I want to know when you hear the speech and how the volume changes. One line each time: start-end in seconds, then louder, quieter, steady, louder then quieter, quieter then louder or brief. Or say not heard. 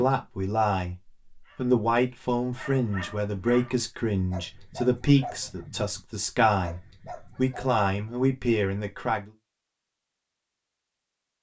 0.0-9.3 steady.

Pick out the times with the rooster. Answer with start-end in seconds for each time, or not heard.
not heard.